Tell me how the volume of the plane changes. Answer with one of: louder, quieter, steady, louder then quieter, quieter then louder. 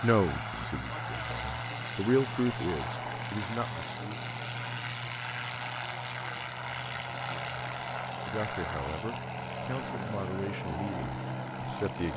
steady.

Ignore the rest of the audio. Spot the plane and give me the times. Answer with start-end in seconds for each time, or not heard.
0.0-12.1.